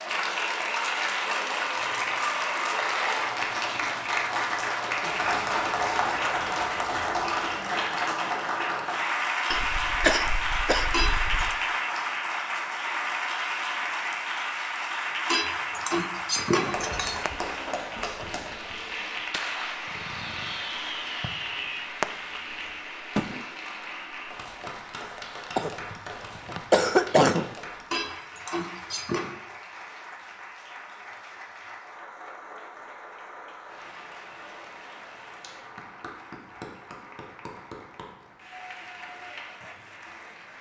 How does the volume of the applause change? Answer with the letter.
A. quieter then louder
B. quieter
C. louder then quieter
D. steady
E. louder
B.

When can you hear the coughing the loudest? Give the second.
27 s.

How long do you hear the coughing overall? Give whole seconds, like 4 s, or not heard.
4 s.